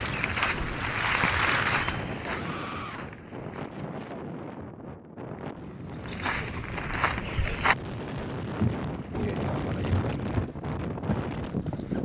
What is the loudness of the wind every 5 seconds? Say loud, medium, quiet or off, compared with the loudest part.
medium, loud, loud.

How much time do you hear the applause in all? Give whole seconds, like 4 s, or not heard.
2 s.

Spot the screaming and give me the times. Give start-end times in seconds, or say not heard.
2.2-3.0.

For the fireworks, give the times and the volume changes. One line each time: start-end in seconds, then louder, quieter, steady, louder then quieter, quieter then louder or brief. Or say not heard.
not heard.